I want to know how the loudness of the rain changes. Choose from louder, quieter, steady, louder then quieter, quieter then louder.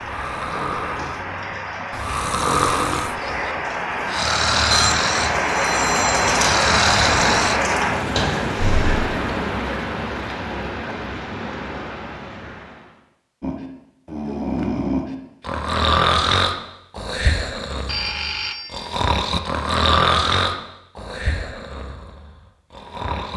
louder then quieter.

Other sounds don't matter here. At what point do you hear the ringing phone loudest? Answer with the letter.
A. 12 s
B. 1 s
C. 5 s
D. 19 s
C.